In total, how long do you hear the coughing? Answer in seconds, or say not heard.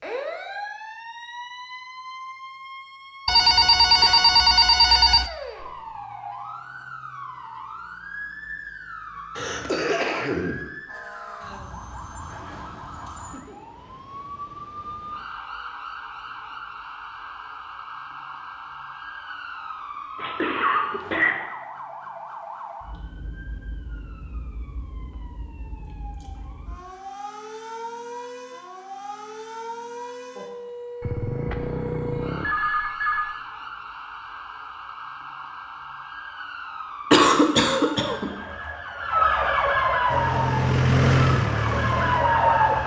4 s.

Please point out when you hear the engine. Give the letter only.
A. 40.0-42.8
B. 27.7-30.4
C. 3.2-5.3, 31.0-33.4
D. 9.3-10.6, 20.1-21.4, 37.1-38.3
A.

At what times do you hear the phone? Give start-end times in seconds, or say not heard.
3.2-5.3, 31.0-33.4.